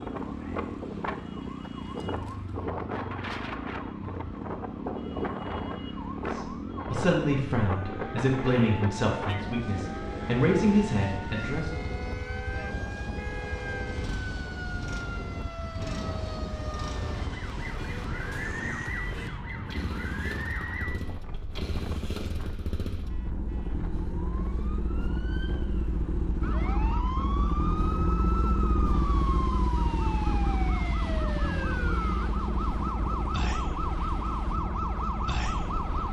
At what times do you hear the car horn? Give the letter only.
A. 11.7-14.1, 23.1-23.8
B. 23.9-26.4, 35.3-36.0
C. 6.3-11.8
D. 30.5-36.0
A.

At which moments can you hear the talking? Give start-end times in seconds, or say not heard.
6.3-11.8.